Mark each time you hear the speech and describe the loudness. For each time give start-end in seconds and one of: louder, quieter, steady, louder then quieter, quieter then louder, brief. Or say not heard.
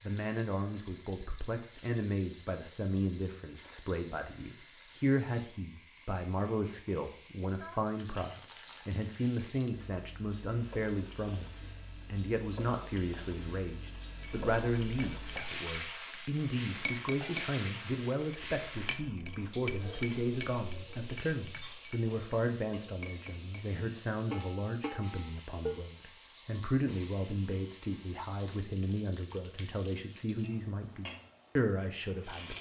0.0-32.5 steady.